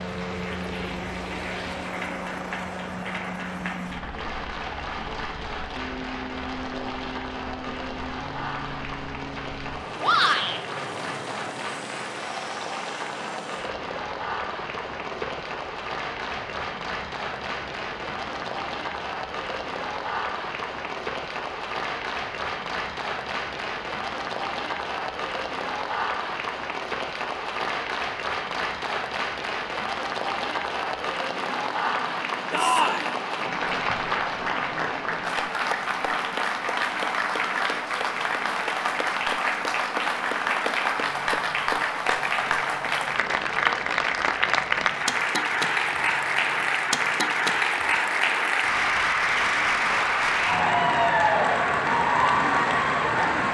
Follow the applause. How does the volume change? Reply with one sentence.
The volume of the applause goes up.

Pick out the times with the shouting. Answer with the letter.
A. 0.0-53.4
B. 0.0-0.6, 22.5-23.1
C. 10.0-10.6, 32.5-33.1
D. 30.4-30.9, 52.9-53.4
C.